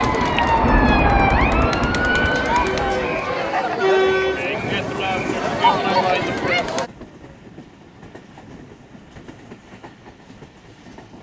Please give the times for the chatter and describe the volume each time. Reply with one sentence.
You can hear the chatter from 0.0 to 6.9 s, getting louder.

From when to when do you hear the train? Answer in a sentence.
You can hear the train from 4.5 to 11.1 s.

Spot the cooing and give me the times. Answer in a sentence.
You can't hear the cooing here.